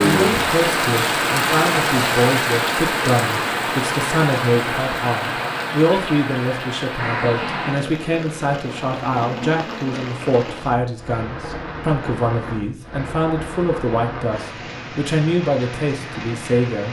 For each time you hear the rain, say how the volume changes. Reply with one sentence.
You can hear the rain from 0.0 to 16.8 s, getting quieter.